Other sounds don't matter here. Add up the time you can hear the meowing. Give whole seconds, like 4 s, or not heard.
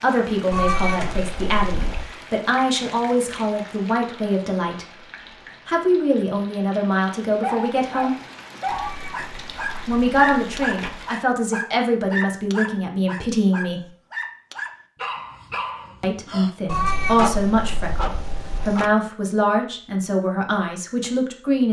6 s.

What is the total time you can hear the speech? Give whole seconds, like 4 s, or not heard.
17 s.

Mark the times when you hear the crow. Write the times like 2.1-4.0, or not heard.
not heard.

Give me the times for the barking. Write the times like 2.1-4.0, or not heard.
7.4-19.0.